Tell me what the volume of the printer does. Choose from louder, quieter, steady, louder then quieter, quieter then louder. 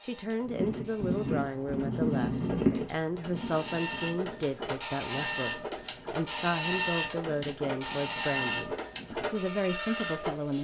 louder.